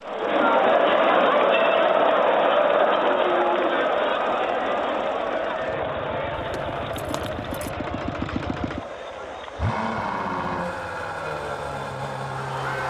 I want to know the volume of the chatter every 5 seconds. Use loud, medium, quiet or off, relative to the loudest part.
loud, medium, quiet.